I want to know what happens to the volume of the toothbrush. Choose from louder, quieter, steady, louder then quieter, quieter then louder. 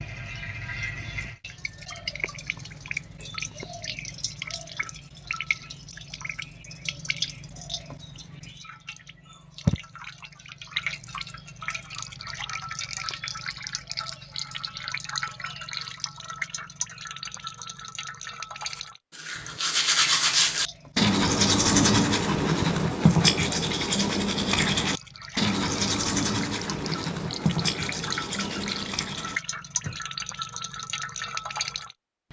quieter.